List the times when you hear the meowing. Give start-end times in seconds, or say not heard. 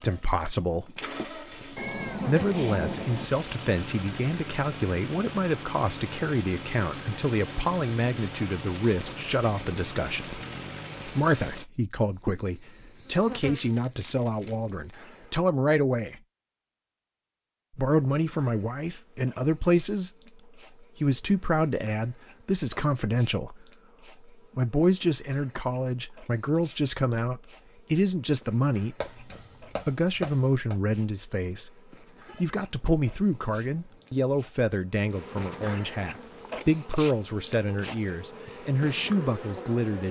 1.8-3.3, 32.2-34.2.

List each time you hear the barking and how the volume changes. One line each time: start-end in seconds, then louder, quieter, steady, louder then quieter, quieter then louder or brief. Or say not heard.
not heard.